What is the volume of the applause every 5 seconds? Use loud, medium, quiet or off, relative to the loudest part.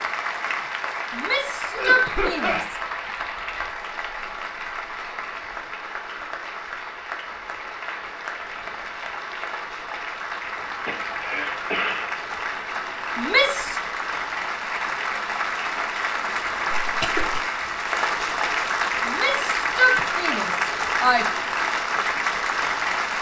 medium, medium, medium, loud, loud.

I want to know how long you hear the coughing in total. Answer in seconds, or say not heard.
3 s.